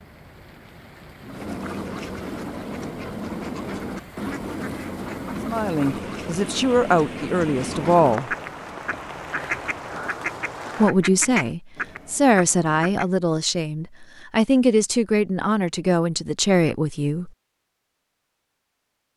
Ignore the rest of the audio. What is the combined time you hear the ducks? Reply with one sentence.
You can hear the ducks for 12 seconds altogether.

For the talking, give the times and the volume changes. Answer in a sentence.
The talking can be heard briefly from 5.5 to 8.3 s; and from 10.8 to 17.3 s, at a steady volume.